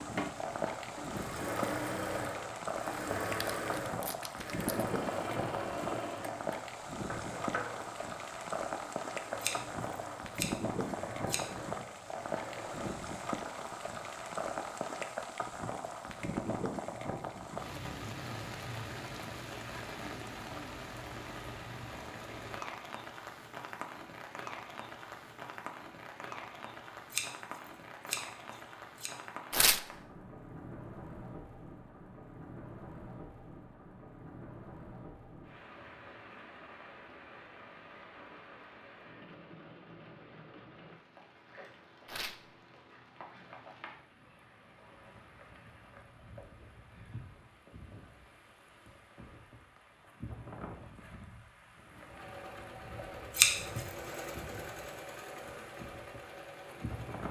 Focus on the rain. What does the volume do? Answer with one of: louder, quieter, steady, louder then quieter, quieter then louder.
quieter.